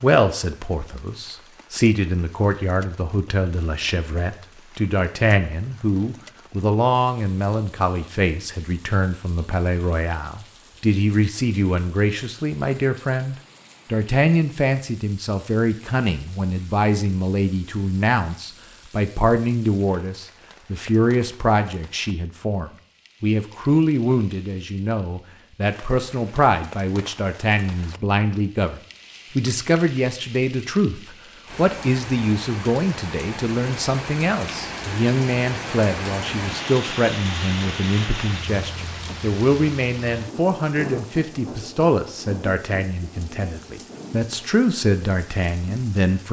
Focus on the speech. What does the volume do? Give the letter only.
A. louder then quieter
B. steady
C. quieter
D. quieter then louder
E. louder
B.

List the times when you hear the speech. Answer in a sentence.
You can hear the speech from 0.0 to 46.2 s.